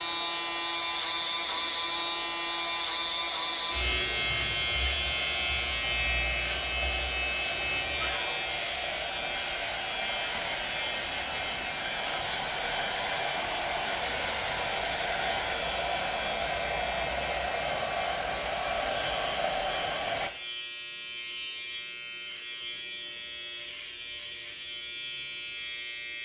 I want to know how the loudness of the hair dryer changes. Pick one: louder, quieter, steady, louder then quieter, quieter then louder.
louder.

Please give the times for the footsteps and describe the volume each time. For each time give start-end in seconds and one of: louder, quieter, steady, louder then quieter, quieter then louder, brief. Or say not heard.
not heard.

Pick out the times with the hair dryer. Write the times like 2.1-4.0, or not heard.
0.0-20.3.